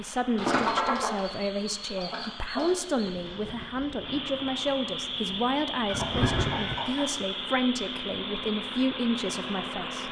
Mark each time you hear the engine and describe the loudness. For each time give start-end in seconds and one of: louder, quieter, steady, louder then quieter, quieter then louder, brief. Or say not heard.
0.0-10.0 louder.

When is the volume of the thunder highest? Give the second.
6 s.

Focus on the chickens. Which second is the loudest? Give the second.
1 s.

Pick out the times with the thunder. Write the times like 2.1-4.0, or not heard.
3.0-6.8.